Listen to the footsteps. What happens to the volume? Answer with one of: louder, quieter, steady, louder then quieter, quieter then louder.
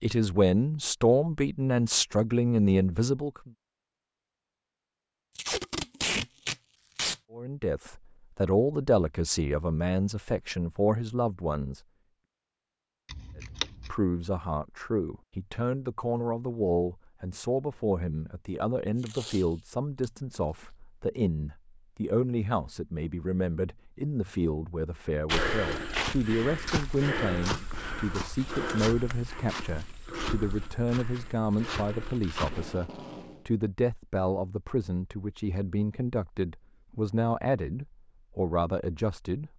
quieter.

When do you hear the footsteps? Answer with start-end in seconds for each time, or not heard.
25.2-32.8.